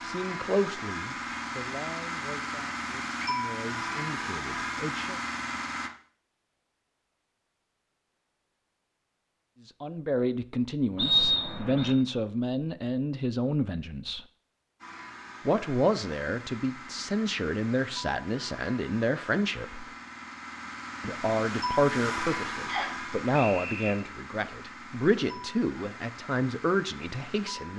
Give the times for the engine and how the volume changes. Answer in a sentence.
The engine can be heard from 0.0 to 5.9 s, at a steady volume; and from 14.8 to 27.7 s, getting louder then quieter.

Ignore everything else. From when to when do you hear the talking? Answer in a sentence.
The talking can be heard from 0.0 to 5.2 s, from 9.7 to 14.2 s, from 15.4 to 19.9 s and from 21.0 to 27.7 s.